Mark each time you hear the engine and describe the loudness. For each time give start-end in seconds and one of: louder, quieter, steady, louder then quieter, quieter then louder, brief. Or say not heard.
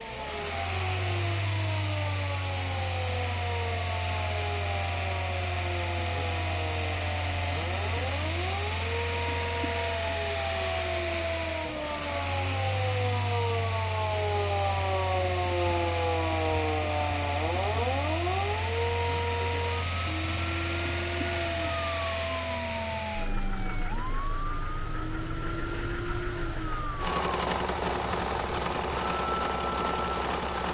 0.0-30.6 steady.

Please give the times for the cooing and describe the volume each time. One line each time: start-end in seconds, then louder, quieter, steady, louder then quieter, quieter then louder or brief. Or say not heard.
not heard.